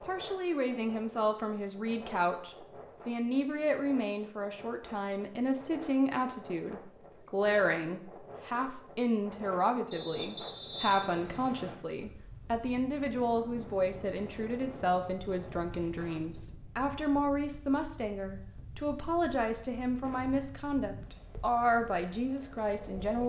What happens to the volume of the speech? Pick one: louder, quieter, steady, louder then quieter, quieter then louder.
steady.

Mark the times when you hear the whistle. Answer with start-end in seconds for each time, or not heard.
9.9-11.8.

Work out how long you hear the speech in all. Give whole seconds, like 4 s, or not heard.
23 s.